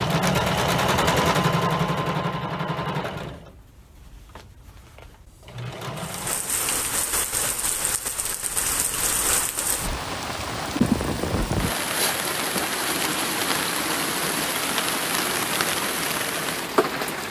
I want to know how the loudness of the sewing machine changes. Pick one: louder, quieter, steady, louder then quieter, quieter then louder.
quieter then louder.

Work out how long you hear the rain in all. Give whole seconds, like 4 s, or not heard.
11 s.